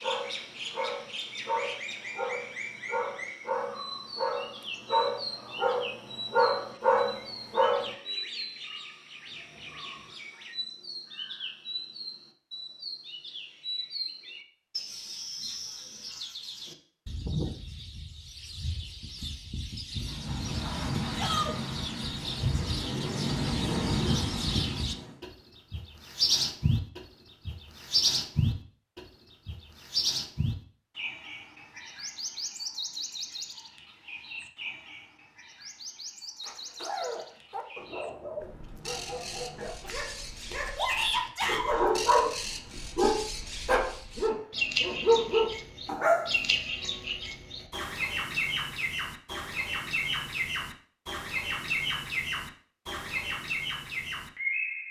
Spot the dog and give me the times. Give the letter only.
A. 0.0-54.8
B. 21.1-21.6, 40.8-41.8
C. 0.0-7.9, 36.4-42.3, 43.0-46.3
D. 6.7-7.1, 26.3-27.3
C.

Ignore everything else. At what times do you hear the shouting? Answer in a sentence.
The shouting can be heard from 21.1 to 21.6 s and from 40.8 to 41.8 s.